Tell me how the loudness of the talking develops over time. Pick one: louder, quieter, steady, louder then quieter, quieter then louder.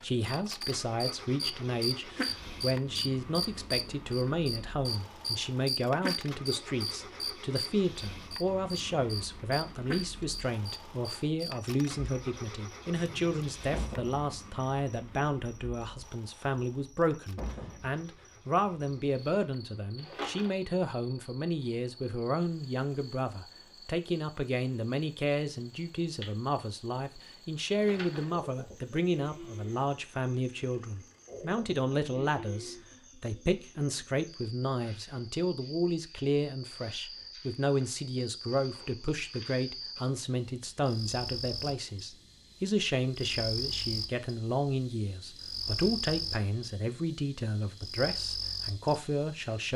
steady.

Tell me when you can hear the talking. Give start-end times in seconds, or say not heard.
0.0-49.7.